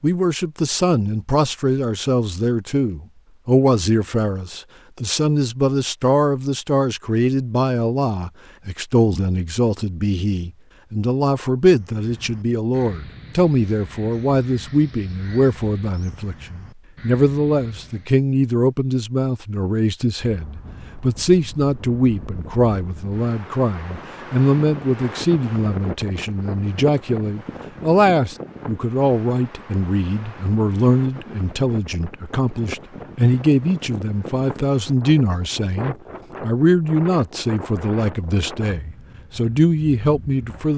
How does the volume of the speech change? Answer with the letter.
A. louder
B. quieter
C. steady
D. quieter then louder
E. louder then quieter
C.